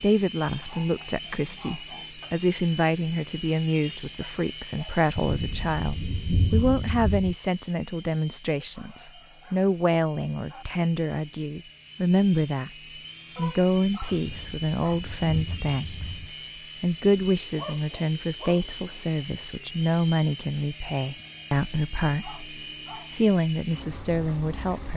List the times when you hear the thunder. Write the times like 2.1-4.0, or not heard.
5.2-7.3, 14.1-16.3.